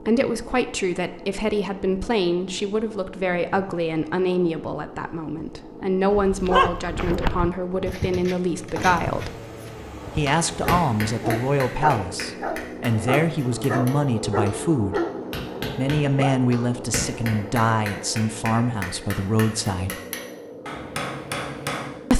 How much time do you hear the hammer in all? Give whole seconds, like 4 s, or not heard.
12 s.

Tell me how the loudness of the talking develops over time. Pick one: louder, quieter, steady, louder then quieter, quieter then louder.
steady.